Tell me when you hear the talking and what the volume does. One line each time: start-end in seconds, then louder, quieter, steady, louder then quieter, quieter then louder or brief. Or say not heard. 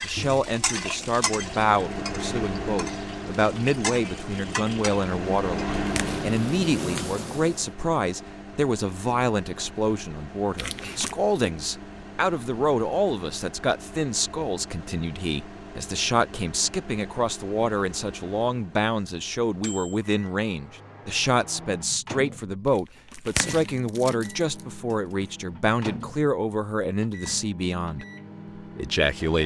0.0-29.4 steady.